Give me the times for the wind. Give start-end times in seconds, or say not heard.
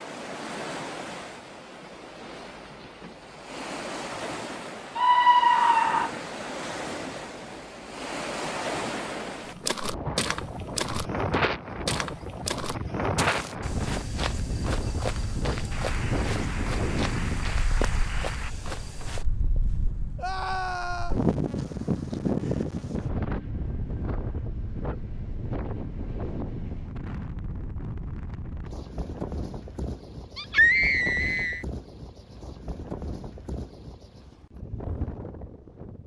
0.0-36.0.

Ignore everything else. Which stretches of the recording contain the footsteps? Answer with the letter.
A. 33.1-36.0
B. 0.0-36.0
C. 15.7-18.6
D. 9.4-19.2
D.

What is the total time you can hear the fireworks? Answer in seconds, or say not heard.
not heard.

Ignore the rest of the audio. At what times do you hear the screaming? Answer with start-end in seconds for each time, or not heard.
5.0-6.1, 20.1-21.2, 30.4-31.6.